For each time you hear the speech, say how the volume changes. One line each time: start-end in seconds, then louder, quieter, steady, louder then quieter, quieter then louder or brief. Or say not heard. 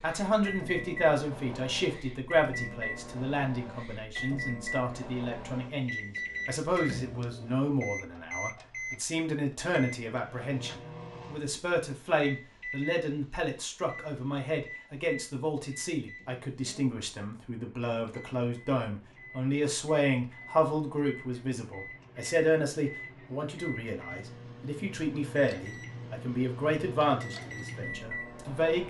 0.0-28.8 steady.